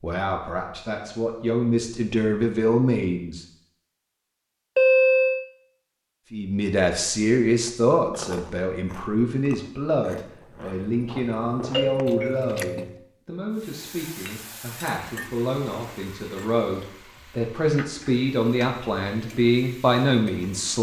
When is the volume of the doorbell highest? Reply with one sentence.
The volume of the doorbell peaks at 5 seconds.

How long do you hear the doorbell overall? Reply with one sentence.
The doorbell can be heard for 2 seconds in total.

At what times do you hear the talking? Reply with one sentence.
The talking can be heard from 0.0 to 3.5 s and from 6.3 to 20.7 s.